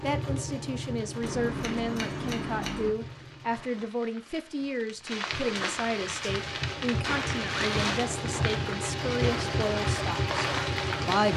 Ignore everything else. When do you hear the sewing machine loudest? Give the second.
10 s.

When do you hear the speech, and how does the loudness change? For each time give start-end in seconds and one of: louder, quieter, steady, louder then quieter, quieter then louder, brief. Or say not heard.
0.0-11.3 steady.